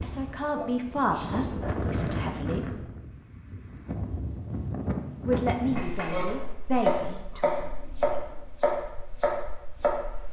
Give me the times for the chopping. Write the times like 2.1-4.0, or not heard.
5.8-10.0.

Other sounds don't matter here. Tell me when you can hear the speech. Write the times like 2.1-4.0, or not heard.
0.0-2.9, 5.2-7.7.